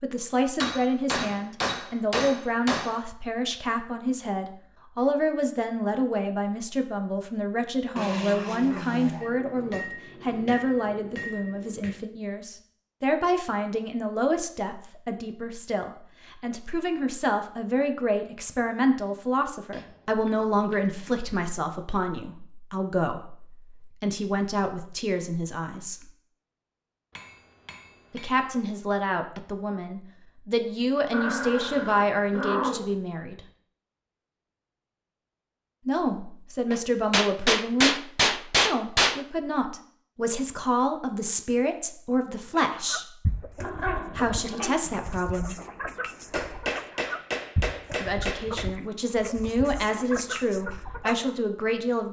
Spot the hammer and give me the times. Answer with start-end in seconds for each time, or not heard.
0.6-3.0, 9.2-12.0, 19.7-21.1, 27.1-28.5, 36.7-39.2, 46.3-48.7.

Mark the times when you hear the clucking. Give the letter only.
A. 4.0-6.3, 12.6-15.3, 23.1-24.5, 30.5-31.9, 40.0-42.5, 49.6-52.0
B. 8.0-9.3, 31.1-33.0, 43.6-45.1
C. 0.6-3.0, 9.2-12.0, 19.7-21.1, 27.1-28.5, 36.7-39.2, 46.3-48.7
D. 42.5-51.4
D.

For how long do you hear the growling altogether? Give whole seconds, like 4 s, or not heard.
5 s.